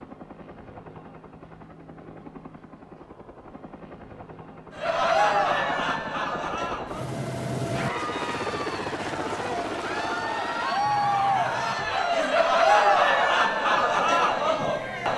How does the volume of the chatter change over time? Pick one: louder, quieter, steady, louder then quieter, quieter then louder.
quieter then louder.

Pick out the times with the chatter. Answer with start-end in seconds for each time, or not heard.
4.8-15.1.